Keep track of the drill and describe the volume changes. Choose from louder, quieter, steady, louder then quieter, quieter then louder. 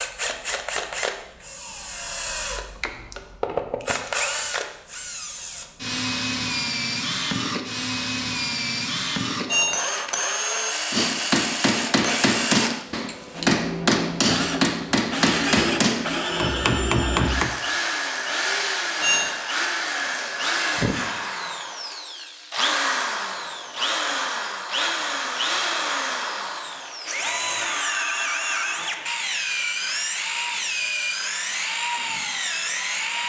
steady.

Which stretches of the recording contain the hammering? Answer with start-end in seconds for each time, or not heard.
10.9-17.5.